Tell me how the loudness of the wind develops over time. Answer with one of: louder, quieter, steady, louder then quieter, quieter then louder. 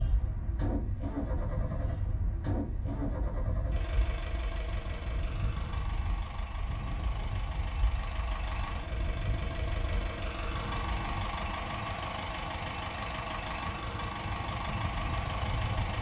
steady.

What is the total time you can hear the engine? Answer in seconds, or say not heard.
16 s.